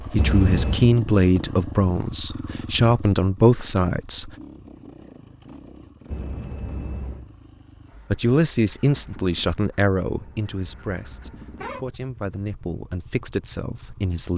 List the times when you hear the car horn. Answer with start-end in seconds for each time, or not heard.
0.1-0.9, 6.1-7.3, 10.1-11.9.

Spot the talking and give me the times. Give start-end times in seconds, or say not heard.
0.1-4.3, 8.1-14.3.